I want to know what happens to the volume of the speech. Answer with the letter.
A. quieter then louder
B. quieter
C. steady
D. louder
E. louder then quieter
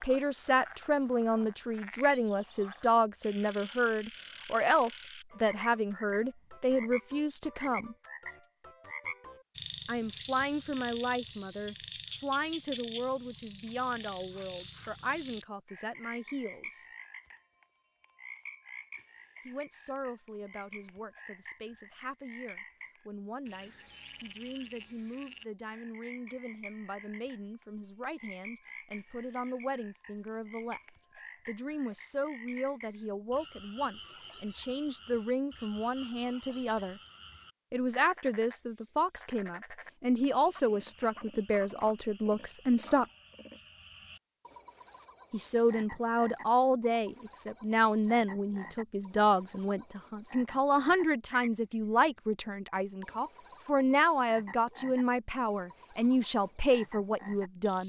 A.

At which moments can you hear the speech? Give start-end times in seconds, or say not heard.
0.0-8.0, 9.8-16.9, 19.4-37.0, 37.7-43.0, 45.3-57.8.